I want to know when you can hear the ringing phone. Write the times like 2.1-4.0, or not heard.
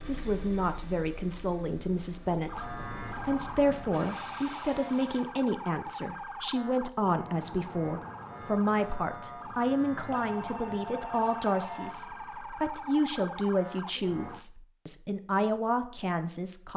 10.1-11.9.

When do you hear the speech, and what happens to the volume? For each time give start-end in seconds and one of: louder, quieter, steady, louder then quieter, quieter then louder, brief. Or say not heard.
0.1-16.7 steady.